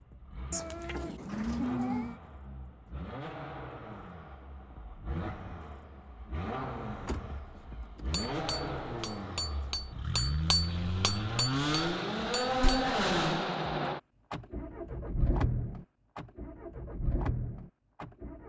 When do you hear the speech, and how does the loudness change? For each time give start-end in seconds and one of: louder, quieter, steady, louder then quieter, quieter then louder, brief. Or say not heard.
not heard.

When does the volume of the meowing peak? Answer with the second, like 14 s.
2 s.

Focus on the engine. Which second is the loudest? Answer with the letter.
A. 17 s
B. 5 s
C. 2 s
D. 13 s
D.